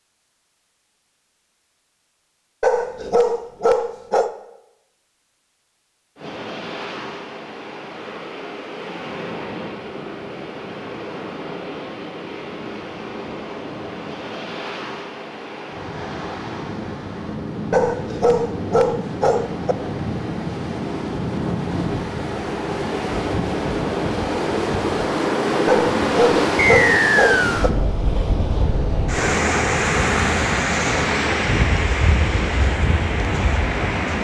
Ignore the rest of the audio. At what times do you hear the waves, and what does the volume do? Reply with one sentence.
You can hear the waves from 6.2 to 34.1 s, getting louder.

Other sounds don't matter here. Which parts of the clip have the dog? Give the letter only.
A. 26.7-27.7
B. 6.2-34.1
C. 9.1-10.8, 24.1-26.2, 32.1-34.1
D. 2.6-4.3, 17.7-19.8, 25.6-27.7
D.